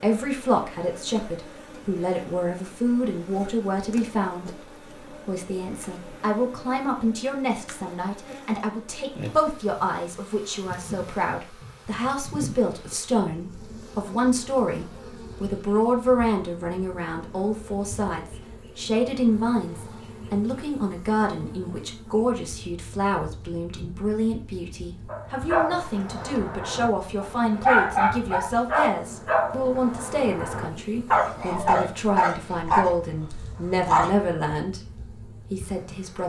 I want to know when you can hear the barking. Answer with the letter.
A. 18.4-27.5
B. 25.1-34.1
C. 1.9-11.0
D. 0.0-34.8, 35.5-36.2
B.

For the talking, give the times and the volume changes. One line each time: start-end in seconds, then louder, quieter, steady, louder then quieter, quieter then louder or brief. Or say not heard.
0.0-34.8 steady
35.5-36.2 brief.